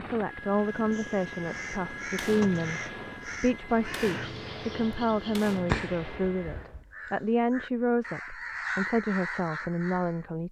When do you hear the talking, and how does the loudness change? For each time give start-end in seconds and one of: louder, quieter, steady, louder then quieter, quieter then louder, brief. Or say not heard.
0.0-10.4 steady.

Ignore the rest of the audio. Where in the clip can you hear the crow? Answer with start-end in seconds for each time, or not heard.
0.7-10.2.